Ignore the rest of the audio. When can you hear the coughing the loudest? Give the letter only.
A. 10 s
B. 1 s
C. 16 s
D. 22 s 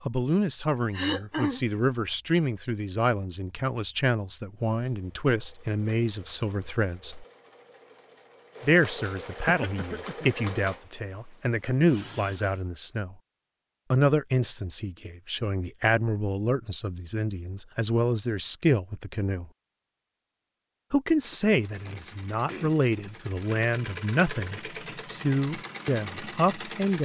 B.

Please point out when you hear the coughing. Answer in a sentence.
You can hear the coughing from 0.9 to 1.6 s, from 9.4 to 10.3 s and from 21.2 to 22.8 s.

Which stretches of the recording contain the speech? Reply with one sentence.
The speech can be heard from 0.1 to 7.2 s, from 8.6 to 13.2 s, from 13.9 to 19.4 s and from 20.9 to 26.9 s.